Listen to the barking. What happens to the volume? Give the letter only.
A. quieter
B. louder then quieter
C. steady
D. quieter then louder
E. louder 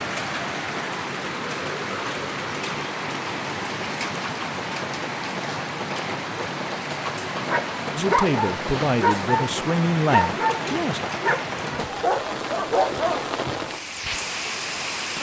C.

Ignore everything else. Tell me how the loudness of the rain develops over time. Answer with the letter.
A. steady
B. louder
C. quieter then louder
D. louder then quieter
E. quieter
A.